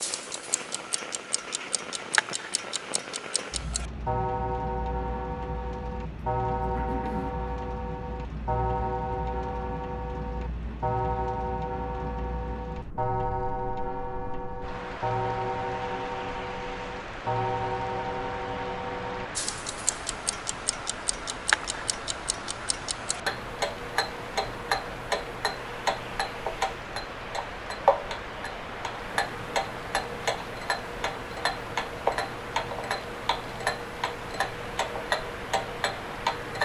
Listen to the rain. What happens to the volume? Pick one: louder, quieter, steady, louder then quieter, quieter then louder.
steady.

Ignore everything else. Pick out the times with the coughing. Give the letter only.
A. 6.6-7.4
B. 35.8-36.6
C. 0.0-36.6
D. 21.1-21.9
A.